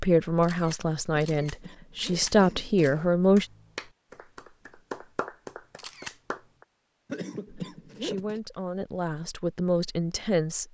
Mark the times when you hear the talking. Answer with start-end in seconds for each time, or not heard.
0.0-3.5, 7.5-10.6.